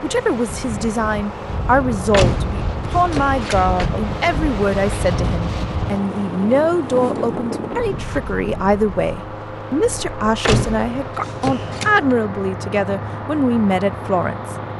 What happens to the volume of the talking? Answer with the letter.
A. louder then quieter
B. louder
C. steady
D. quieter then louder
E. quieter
C.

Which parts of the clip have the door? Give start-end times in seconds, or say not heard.
2.1-4.0, 10.4-11.9.